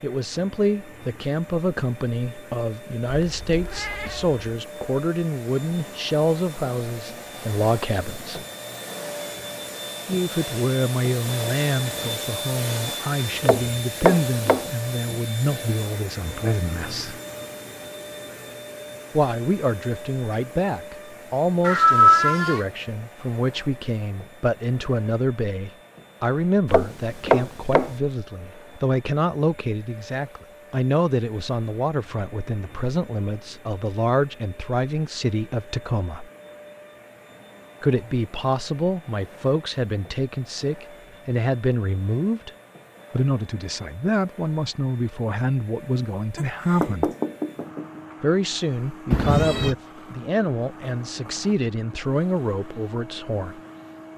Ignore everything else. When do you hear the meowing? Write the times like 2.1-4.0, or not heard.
3.1-4.4, 21.6-22.6, 49.1-49.8.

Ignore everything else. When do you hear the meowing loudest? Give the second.
22 s.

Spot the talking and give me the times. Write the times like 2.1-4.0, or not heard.
0.0-8.4, 10.1-17.2, 19.1-36.3, 37.8-42.5, 43.1-47.1, 48.2-53.6.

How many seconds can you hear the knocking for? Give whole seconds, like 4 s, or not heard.
4 s.